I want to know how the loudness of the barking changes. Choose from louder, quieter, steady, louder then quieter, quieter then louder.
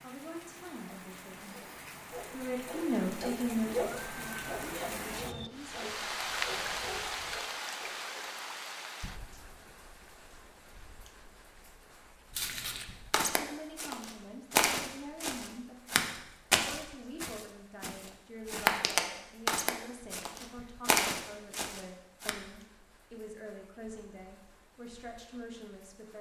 louder then quieter.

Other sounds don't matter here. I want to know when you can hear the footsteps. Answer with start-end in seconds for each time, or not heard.
12.3-22.4.